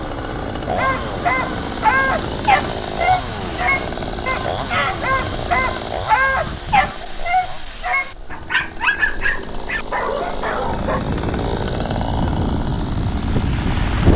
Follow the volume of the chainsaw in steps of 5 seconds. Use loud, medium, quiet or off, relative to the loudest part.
loud, medium, loud.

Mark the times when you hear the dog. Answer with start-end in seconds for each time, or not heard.
0.8-11.1.